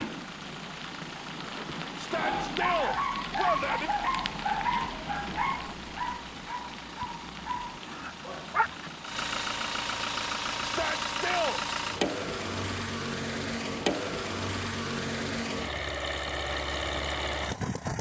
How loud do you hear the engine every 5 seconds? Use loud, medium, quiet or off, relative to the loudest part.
quiet, medium, loud, loud.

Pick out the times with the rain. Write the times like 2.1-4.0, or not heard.
0.0-9.2.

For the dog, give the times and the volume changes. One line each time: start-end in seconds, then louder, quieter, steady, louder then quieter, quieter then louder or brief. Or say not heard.
2.1-8.9 quieter.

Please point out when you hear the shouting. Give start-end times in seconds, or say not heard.
1.9-3.9, 10.6-11.6.